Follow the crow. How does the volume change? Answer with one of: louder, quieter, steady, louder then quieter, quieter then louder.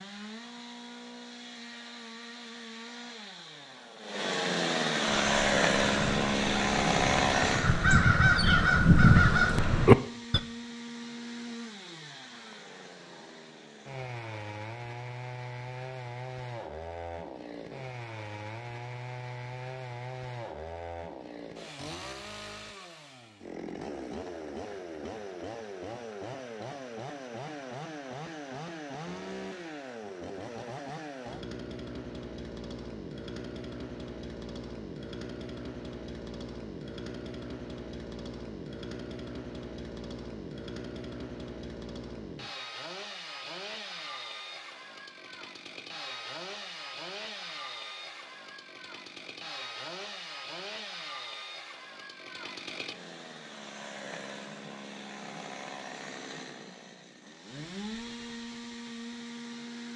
louder.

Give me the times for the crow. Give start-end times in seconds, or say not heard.
5.0-10.4.